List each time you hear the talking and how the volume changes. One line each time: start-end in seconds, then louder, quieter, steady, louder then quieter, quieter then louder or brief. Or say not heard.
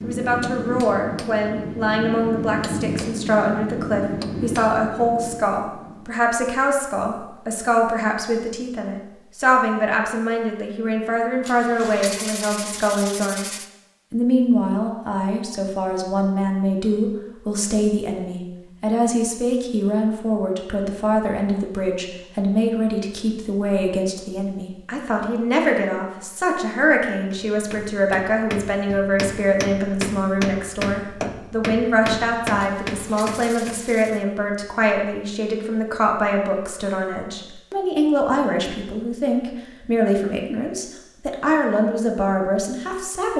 0.0-43.3 steady.